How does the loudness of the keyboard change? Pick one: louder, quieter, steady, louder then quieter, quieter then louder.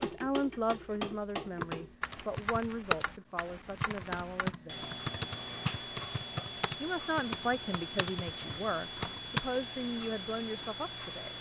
quieter.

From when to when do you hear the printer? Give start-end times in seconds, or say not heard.
not heard.